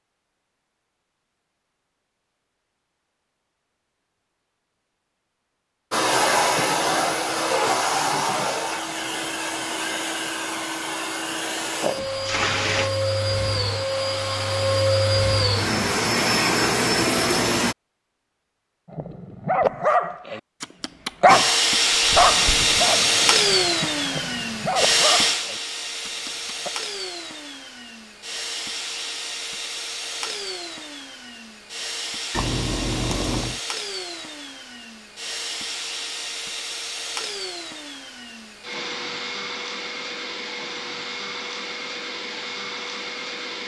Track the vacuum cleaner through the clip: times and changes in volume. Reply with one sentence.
You can hear the vacuum cleaner from 5.9 to 17.8 s, getting quieter then louder; and from 21.2 to 43.6 s, getting quieter.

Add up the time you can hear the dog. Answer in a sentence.
The dog can be heard for 8 seconds in total.